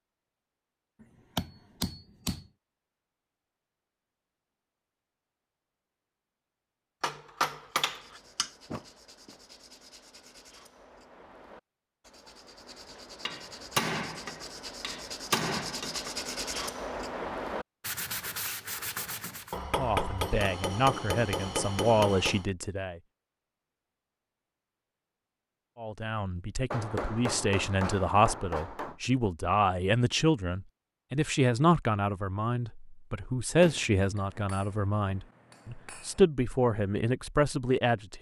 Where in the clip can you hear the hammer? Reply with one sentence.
The hammer can be heard from 1.4 to 2.4 s, from 7.0 to 8.5 s, from 13.2 to 16.1 s, from 19.5 to 22.4 s, from 26.7 to 29.0 s and from 34.1 to 36.2 s.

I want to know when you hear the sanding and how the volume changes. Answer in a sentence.
The sanding can be heard from 7.8 to 19.6 s, getting louder.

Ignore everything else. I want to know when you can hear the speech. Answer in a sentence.
The speech can be heard from 19.8 to 23.0 s and from 25.8 to 38.1 s.